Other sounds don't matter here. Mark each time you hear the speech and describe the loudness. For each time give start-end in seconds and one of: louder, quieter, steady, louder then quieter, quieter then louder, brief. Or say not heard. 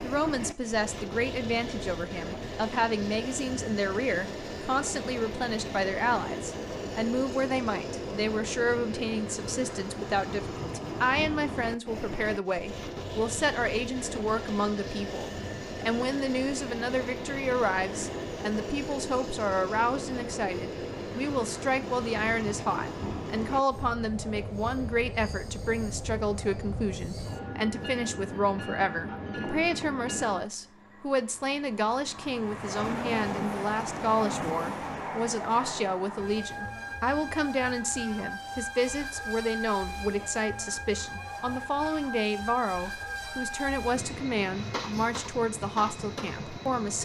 0.0-47.0 steady.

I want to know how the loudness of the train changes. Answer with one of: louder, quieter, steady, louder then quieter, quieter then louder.
steady.